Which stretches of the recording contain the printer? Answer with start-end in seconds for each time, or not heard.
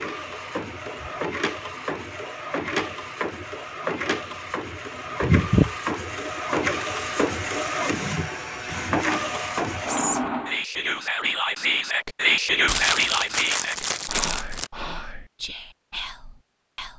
0.0-10.6.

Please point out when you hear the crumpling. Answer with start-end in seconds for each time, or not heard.
12.7-14.7.